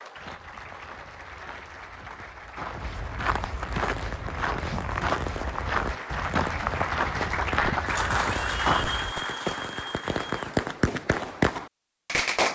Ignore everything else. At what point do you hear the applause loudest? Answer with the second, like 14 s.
8 s.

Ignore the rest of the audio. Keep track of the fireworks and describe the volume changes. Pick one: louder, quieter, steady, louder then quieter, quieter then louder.
louder.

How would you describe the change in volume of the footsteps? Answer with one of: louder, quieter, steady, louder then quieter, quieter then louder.
louder.